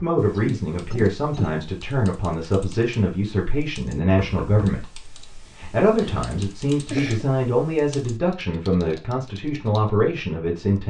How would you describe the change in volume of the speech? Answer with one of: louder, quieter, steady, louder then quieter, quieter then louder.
steady.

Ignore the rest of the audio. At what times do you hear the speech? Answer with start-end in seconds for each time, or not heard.
0.0-10.8.